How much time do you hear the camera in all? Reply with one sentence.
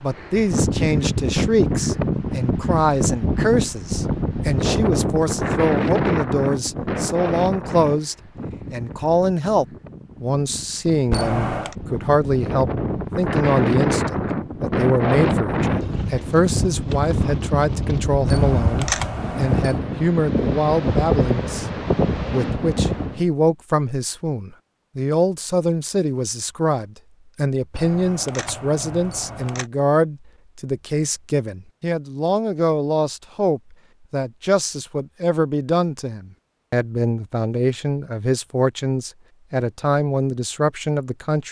The camera can be heard for 4 seconds in total.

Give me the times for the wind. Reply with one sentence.
The wind can be heard from 0.0 to 23.2 s.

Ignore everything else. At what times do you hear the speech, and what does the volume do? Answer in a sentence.
You can hear the speech from 0.0 to 41.4 s, at a steady volume.